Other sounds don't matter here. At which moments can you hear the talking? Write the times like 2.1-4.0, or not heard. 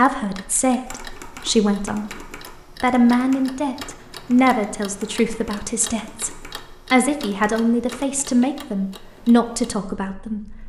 0.0-2.2, 2.8-10.6.